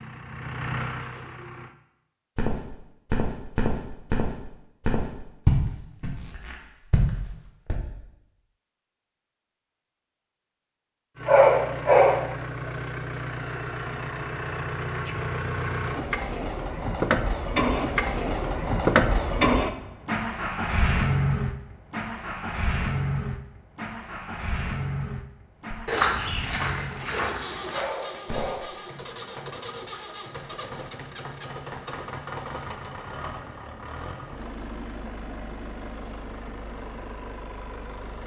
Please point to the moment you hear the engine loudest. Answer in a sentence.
The volume of the engine peaks at 19 seconds.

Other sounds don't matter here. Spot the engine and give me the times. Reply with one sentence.
The engine can be heard from 0.0 to 1.8 s and from 11.2 to 38.2 s.